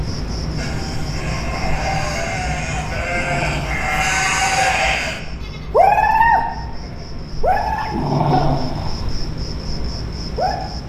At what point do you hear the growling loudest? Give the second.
8 s.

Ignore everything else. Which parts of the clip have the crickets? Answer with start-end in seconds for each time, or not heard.
0.0-10.8.